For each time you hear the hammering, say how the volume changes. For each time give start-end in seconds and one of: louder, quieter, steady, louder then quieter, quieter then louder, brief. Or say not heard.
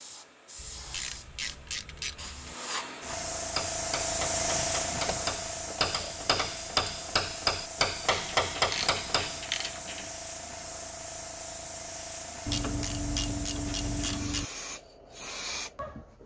3.5-9.4 louder.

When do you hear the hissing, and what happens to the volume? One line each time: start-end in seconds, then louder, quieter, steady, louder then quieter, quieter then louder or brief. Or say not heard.
0.0-16.2 louder then quieter.